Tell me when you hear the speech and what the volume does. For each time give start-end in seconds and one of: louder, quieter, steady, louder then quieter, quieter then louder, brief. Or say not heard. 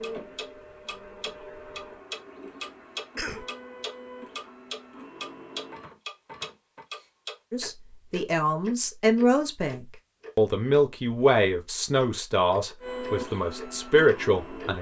7.5-14.7 steady.